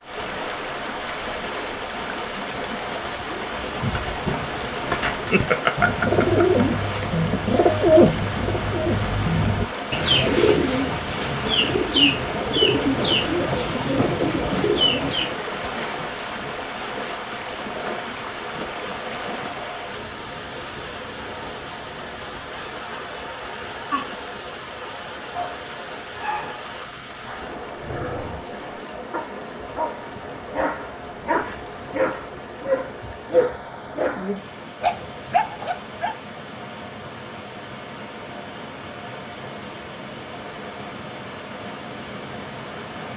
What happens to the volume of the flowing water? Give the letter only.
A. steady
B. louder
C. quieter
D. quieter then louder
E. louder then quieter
C.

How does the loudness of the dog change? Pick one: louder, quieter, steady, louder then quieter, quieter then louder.
louder.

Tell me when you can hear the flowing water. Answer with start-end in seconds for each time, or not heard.
0.0-43.1.